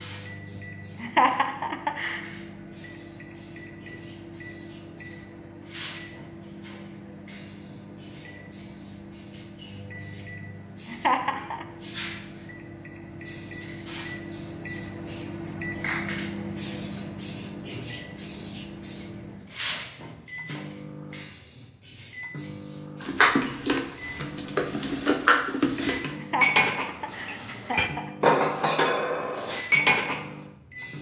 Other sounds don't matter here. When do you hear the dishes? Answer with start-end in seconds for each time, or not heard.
23.0-30.2.